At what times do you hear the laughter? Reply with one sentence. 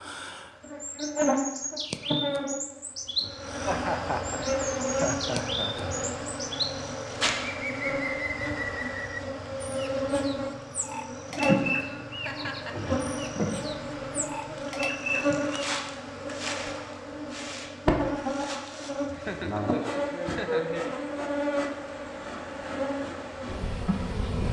You can hear the laughter from 3.6 to 5.8 s, from 12.2 to 12.9 s and from 19.1 to 20.6 s.